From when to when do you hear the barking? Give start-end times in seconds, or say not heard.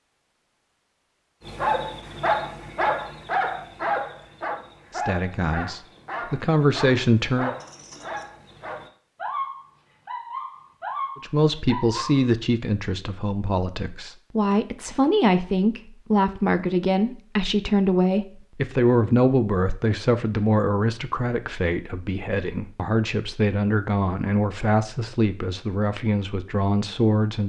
1.4-12.3.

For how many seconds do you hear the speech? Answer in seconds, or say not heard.
19 s.